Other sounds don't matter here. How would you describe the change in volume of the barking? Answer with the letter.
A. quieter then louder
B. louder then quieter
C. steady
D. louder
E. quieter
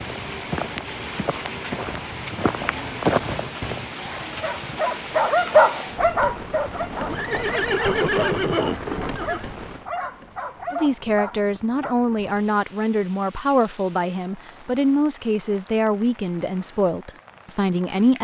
E.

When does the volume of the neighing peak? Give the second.
8 s.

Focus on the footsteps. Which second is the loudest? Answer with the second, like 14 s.
3 s.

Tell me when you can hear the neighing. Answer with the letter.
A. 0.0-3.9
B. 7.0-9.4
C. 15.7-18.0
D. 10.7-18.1
B.